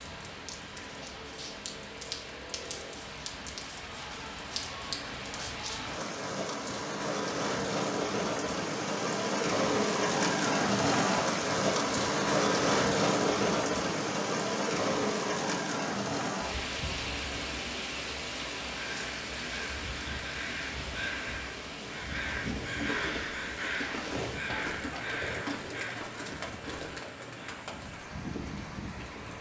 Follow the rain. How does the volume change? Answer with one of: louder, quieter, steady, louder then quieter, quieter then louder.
louder then quieter.